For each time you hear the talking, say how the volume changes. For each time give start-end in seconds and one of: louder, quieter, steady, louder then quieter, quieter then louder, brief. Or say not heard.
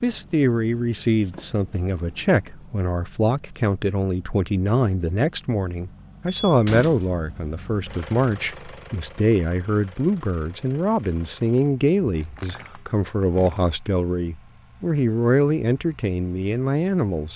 0.0-17.3 steady.